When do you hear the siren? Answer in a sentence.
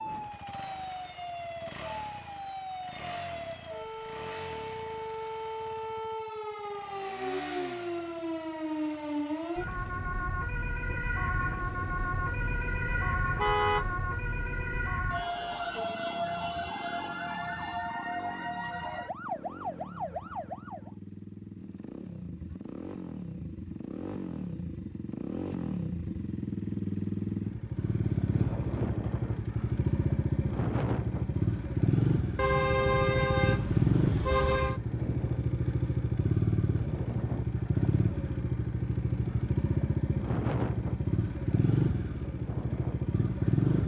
You can hear the siren from 0.0 to 20.9 s.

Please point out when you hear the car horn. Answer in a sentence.
The car horn can be heard from 13.3 to 13.8 s and from 32.4 to 34.8 s.